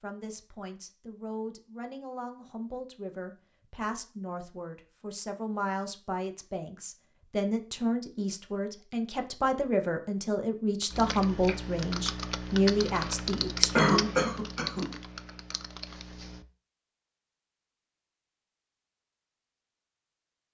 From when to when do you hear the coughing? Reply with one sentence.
The coughing can be heard from 13.8 to 14.9 s.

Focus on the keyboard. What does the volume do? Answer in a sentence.
The loudness of the keyboard goes up, then down.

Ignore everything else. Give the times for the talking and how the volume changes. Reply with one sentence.
The talking can be heard from 0.0 to 14.1 s, getting louder.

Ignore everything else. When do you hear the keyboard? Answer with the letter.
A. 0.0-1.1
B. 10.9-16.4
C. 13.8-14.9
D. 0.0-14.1
B.